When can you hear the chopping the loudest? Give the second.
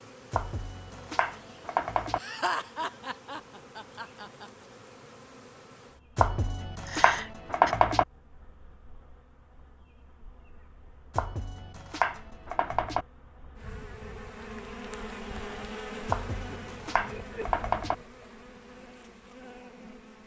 8 s.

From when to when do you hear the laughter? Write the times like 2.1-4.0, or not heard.
2.1-4.5, 6.8-7.8, 16.4-18.2.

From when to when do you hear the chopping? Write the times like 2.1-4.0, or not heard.
0.3-2.2, 6.2-8.1, 11.2-13.1, 16.1-17.9.